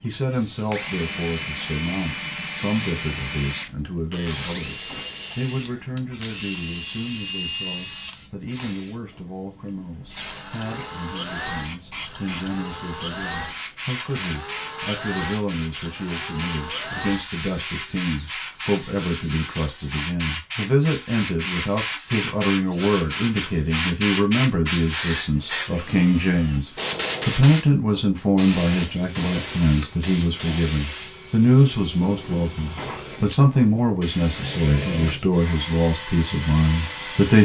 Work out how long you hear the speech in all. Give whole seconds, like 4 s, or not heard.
37 s.